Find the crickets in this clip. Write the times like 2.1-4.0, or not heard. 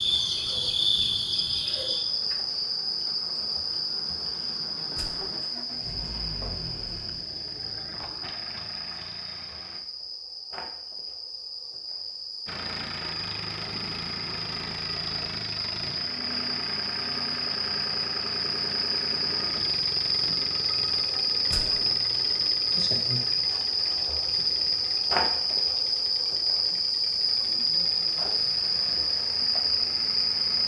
0.0-30.6.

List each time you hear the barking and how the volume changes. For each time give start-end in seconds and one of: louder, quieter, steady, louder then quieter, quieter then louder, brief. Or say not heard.
not heard.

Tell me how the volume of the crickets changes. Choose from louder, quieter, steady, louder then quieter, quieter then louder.
quieter then louder.